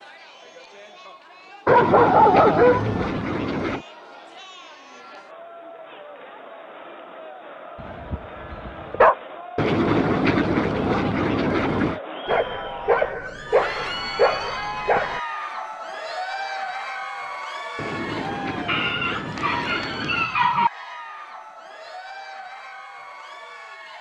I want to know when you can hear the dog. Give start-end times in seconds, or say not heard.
1.6-3.1, 7.8-9.2, 12.2-15.2, 18.6-20.7.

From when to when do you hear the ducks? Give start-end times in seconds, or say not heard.
1.6-3.9, 9.6-12.0, 17.8-20.2.